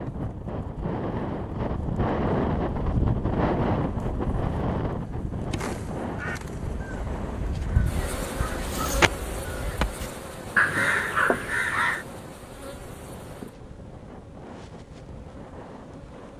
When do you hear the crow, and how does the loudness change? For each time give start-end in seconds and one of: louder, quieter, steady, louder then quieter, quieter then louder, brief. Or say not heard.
6.2-12.1 louder.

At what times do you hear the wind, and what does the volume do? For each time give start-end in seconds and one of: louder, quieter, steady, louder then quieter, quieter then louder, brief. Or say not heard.
0.0-16.3 quieter.